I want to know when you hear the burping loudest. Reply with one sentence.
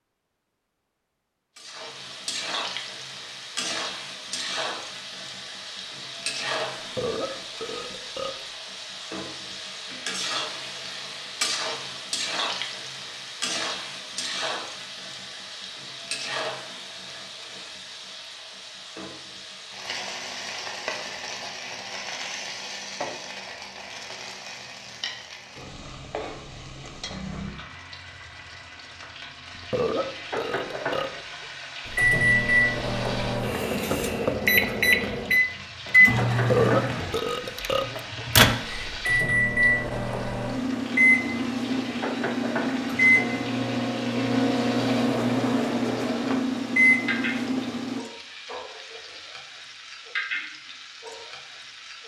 The loudest moment of the burping is at 37 seconds.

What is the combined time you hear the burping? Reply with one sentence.
The burping can be heard for 6 seconds in total.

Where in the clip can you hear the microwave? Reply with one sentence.
You can hear the microwave from 31.9 to 48.0 s.